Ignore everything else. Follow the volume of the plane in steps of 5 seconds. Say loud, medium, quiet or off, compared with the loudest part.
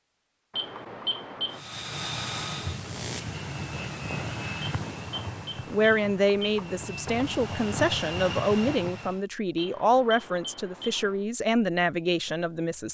loud, loud, off.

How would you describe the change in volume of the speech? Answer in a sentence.
The loudness of the speech stays about the same.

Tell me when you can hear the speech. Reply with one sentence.
The speech can be heard from 5.7 to 12.8 s.